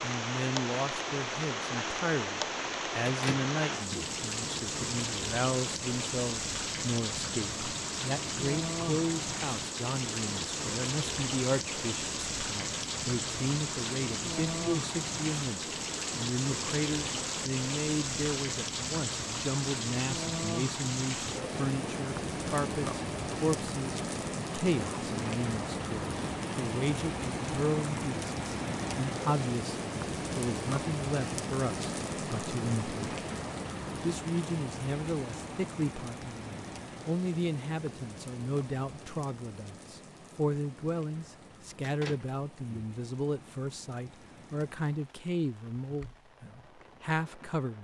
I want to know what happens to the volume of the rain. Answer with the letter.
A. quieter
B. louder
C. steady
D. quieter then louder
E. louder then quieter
A.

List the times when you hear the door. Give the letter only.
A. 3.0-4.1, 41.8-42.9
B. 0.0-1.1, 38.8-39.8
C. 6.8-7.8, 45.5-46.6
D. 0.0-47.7
A.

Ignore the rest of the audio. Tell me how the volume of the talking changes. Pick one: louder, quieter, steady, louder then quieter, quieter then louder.
steady.